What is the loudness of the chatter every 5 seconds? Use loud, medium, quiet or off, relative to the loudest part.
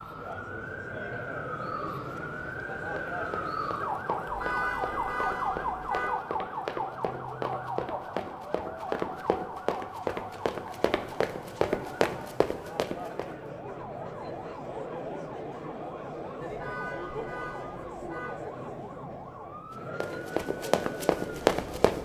loud, medium, loud, loud, loud.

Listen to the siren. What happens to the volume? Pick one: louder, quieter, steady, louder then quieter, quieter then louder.
quieter.